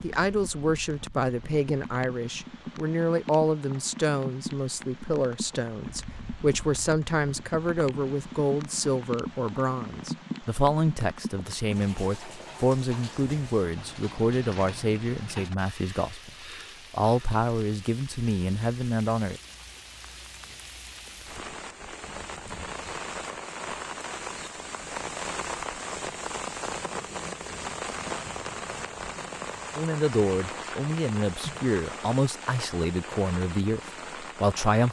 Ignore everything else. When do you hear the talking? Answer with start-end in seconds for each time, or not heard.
0.0-19.4, 29.8-34.8.